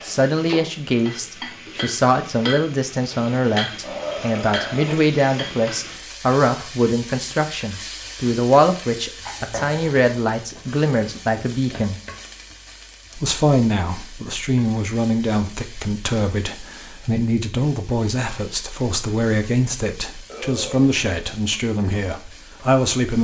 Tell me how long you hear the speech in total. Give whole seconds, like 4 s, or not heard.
22 s.